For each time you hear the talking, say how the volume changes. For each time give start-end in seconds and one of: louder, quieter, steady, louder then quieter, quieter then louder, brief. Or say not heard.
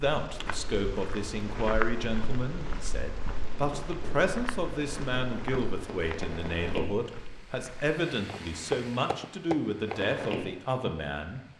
0.0-11.4 steady.